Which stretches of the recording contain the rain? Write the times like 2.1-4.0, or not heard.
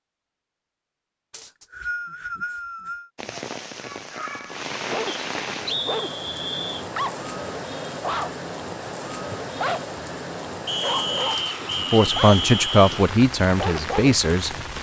3.1-14.7.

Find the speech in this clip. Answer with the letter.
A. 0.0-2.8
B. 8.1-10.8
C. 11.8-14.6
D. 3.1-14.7
C.